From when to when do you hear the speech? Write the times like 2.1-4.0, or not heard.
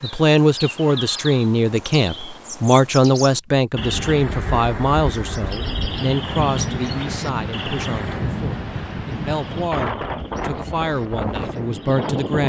0.0-12.4.